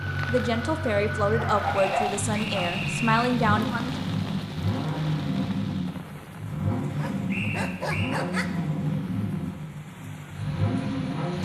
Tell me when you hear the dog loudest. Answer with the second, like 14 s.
2 s.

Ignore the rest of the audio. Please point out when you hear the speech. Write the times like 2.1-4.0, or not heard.
0.2-4.0.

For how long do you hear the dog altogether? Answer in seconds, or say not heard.
3 s.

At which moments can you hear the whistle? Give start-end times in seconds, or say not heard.
1.7-3.3, 7.2-8.2.